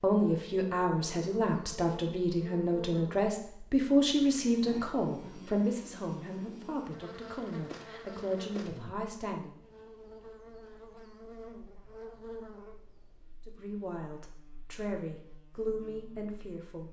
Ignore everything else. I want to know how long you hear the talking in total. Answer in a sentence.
You can hear the talking for 13 seconds altogether.